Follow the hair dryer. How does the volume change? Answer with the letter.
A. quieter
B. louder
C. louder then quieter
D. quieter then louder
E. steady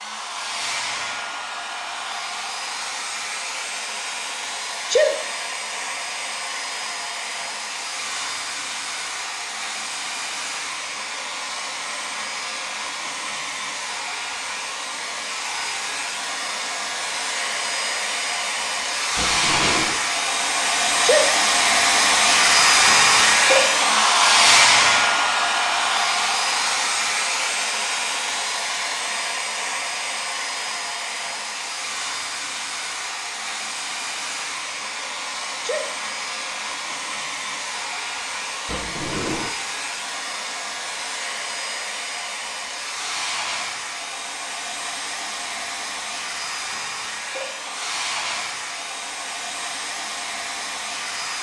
C.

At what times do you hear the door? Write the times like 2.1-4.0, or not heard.
19.1-20.0, 38.6-39.5.